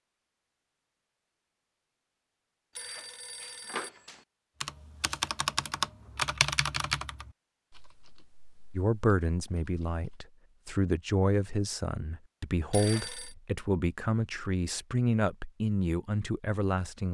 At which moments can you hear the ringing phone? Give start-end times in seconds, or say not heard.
2.8-4.2, 12.7-13.3.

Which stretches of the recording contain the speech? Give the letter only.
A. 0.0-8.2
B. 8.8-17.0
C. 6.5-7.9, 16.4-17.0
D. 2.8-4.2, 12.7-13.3
B.